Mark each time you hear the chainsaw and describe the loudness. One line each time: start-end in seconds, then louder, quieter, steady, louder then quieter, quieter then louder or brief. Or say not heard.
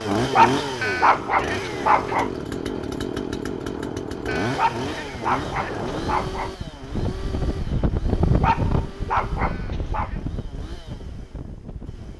0.0-12.1 quieter.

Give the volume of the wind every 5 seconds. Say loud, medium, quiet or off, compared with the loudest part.
medium, loud, medium.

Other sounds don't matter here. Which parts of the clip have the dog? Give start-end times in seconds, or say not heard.
0.3-2.3, 4.5-6.5, 8.4-10.1.